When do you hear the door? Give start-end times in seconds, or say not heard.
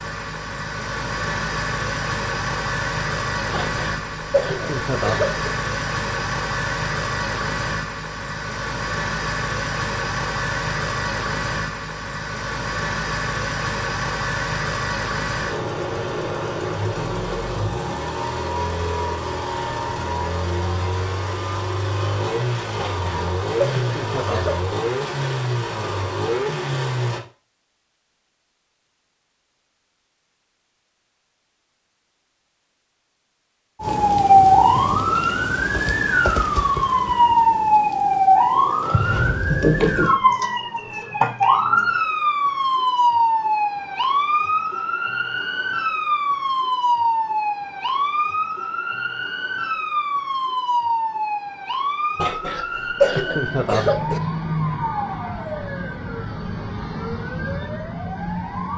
not heard.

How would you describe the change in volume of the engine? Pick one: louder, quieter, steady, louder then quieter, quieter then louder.
steady.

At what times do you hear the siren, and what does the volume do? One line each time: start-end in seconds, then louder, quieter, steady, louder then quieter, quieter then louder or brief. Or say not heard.
33.8-58.7 quieter.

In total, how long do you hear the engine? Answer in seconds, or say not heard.
27 s.